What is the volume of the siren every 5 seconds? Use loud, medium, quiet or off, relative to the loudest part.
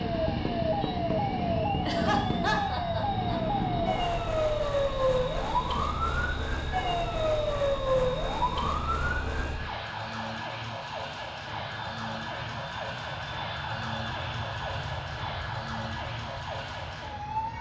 loud, loud, medium, medium.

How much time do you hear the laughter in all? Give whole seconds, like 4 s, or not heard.
2 s.